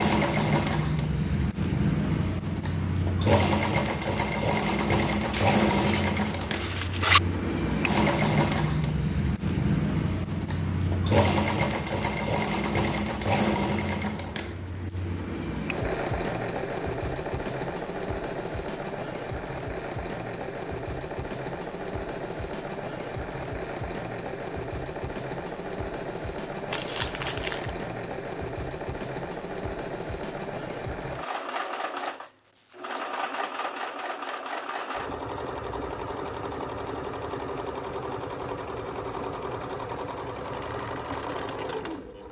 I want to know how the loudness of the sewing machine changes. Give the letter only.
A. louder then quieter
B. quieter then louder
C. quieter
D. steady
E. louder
C.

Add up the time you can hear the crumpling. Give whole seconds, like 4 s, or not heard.
3 s.